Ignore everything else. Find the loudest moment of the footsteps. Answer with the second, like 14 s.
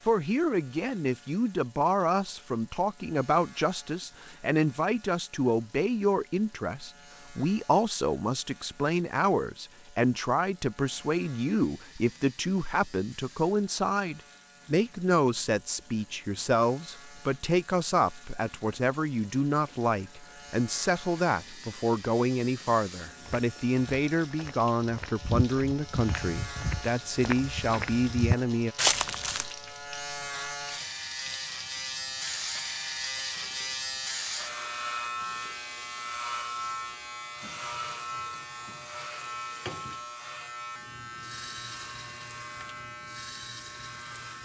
29 s.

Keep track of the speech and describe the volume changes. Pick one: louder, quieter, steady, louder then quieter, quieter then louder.
steady.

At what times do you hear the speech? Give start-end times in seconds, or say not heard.
0.1-28.8.